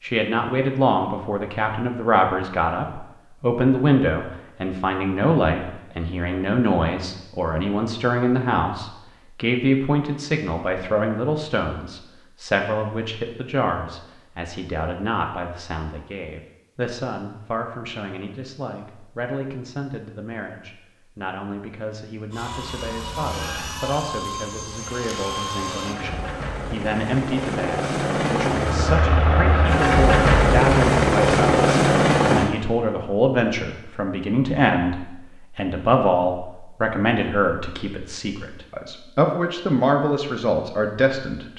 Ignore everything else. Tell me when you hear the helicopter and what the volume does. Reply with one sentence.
The helicopter can be heard from 22.3 to 32.5 s, getting louder.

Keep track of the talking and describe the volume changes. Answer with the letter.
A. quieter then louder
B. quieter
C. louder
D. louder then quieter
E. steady
A.